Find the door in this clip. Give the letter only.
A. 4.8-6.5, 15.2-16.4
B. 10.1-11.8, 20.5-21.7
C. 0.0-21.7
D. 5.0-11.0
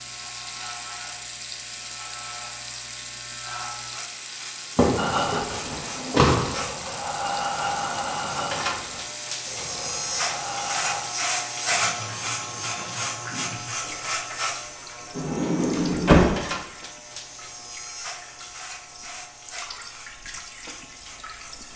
A.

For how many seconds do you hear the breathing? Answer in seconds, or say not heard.
6 s.